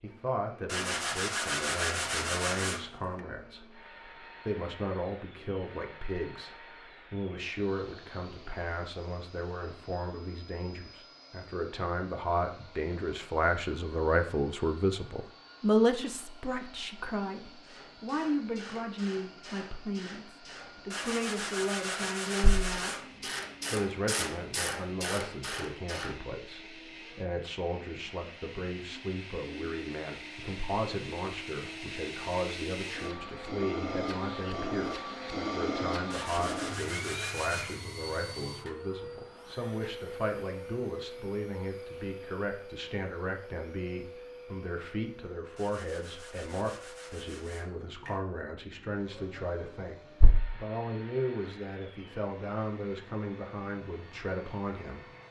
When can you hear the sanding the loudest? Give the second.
2 s.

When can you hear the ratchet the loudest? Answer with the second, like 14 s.
24 s.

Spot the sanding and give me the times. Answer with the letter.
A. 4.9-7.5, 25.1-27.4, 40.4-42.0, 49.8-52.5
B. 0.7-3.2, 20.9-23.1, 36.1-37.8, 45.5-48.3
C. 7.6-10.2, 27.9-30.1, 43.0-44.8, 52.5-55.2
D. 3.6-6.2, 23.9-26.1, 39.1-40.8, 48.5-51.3
B.